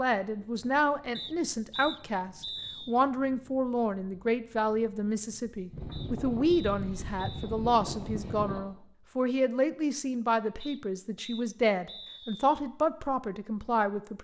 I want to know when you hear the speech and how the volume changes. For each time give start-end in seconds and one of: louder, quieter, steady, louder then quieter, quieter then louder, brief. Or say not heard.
0.0-14.1 steady.